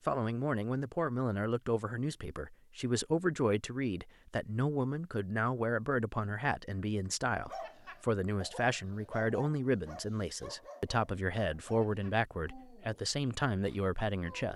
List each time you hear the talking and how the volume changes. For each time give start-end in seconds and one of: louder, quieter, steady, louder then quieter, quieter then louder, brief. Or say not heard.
0.1-14.5 steady.